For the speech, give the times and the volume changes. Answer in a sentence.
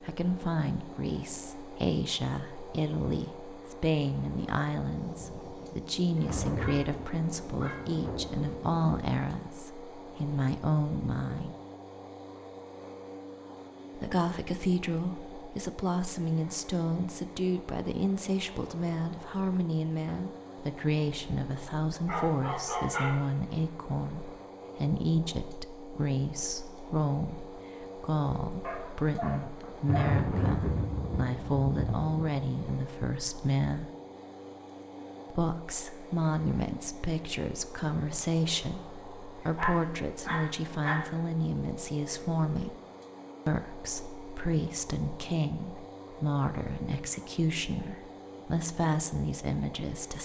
You can hear the speech from 0.0 to 11.6 s, at a steady volume; from 13.9 to 33.9 s, at a steady volume; from 35.3 to 42.8 s, at a steady volume; and from 43.5 to 50.1 s, at a steady volume.